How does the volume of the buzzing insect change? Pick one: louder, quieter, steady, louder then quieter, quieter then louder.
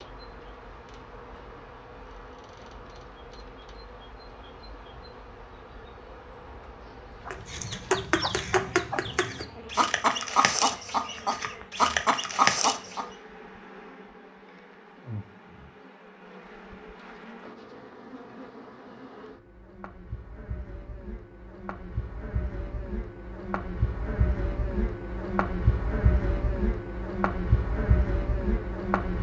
louder.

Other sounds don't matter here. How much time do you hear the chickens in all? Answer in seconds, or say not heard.
6 s.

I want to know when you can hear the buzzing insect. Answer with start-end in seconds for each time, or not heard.
0.0-29.1.